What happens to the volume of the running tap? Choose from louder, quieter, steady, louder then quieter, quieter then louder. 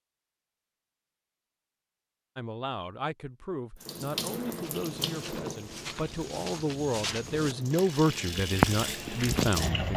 quieter then louder.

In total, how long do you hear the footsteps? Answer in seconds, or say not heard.
5 s.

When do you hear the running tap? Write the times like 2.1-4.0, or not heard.
3.8-9.9.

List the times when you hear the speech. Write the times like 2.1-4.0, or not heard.
2.4-9.9.